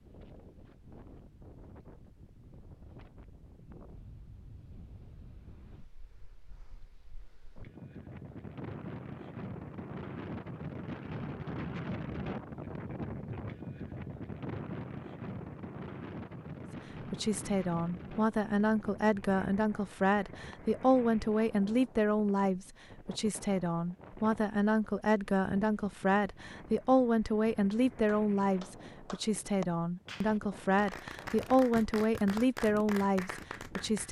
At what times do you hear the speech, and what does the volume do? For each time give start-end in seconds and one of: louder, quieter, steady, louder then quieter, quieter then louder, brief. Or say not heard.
17.0-34.0 steady.